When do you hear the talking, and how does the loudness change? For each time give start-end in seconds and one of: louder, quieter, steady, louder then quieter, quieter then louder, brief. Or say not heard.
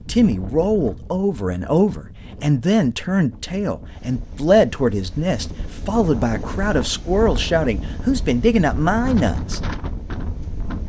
0.1-9.6 steady.